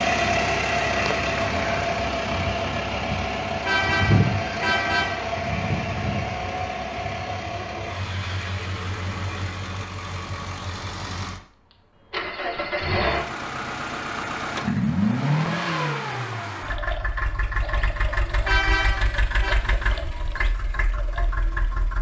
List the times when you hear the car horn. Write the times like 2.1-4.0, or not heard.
3.6-5.2, 18.4-19.6.